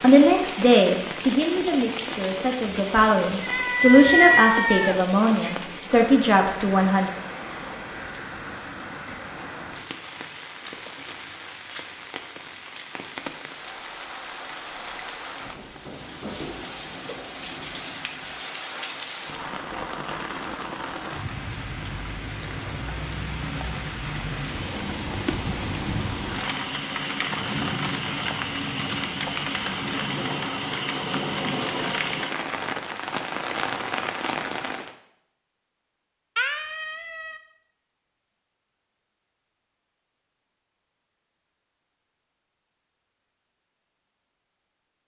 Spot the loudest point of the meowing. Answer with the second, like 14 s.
4 s.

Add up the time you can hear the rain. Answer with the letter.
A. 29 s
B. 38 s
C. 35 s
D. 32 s
C.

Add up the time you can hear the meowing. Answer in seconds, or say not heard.
5 s.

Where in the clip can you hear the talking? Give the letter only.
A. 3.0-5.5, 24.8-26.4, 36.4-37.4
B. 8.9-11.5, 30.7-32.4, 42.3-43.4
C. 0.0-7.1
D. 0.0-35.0
C.